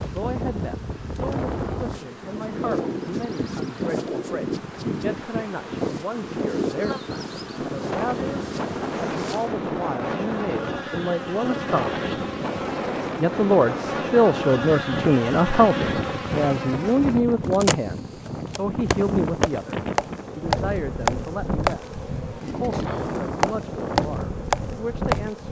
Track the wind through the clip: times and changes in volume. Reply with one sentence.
The wind can be heard from 0.0 to 25.4 s, at a steady volume.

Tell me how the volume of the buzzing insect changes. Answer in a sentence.
The volume of the buzzing insect goes up.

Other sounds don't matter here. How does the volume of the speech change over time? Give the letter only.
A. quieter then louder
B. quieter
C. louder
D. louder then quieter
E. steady
D.